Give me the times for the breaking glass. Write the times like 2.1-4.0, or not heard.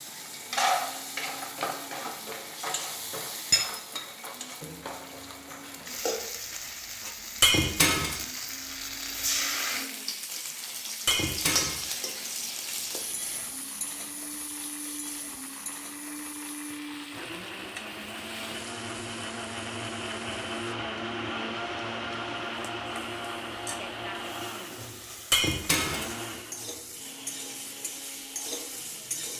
7.4-8.2, 11.1-11.8, 25.3-26.1.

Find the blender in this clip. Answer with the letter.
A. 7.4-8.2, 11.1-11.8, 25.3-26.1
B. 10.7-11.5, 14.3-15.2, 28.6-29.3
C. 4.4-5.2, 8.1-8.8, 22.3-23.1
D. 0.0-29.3
D.